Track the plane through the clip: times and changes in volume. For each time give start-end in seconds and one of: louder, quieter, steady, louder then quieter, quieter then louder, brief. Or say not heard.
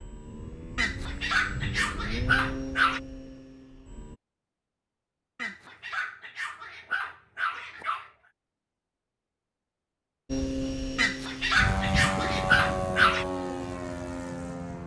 0.0-4.2 louder then quieter
10.2-14.8 louder then quieter.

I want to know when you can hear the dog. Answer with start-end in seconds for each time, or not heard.
0.8-3.0, 5.3-8.1, 10.9-13.2.